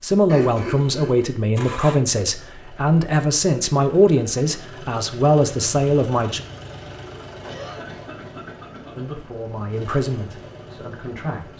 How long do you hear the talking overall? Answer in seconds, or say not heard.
9 s.